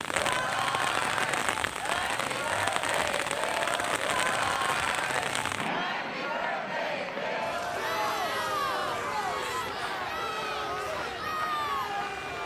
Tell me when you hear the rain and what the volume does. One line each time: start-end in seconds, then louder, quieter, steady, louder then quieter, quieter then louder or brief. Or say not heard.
0.0-12.4 quieter.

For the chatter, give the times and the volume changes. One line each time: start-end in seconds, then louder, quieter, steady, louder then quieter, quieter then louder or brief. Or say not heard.
0.0-12.4 steady.